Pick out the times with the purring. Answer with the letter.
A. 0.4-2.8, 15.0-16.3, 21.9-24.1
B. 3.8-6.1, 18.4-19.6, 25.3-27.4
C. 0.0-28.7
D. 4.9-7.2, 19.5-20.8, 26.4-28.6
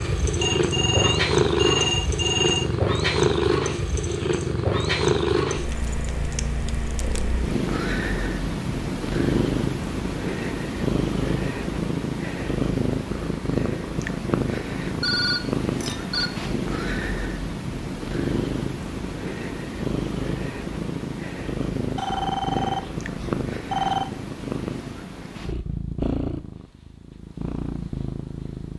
C.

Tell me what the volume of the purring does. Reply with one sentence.
The volume of the purring goes down.